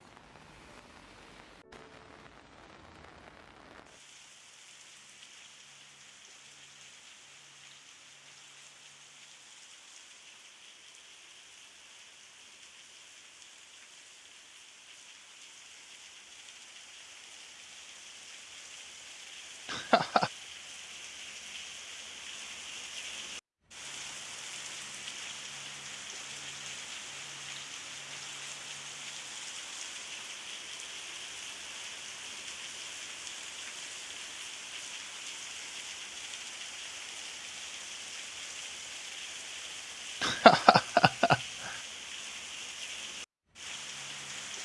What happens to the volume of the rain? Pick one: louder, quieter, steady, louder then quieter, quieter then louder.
louder.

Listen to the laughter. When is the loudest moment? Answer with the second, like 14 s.
41 s.